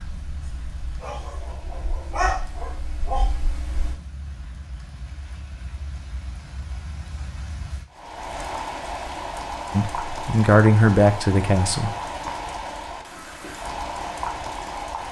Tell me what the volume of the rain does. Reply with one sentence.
The loudness of the rain goes up.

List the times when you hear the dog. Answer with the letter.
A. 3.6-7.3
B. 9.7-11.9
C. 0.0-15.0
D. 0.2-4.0
D.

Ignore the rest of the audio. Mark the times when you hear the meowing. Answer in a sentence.
The meowing can't be heard in this clip.